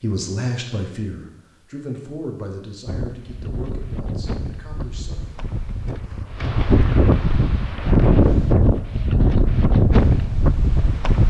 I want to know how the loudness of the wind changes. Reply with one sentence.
The volume of the wind goes up.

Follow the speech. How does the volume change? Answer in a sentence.
The volume of the speech goes down.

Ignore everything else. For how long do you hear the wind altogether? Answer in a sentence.
The wind can be heard for 8 seconds in total.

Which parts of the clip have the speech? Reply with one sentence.
The speech can be heard from 0.0 to 5.5 s.